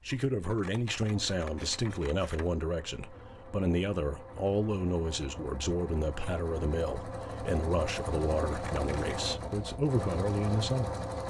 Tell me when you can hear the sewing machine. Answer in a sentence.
The sewing machine can be heard from 0.0 to 11.2 s.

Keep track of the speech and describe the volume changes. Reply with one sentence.
The loudness of the speech stays about the same.